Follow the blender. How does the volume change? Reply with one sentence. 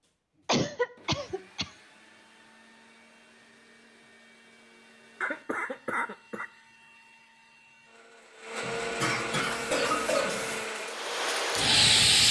The volume of the blender goes up.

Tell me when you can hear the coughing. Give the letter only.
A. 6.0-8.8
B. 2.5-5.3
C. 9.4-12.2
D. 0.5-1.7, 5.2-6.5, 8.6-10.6
D.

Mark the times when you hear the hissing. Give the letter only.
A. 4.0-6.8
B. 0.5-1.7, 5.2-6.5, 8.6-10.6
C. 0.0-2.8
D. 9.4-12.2
D.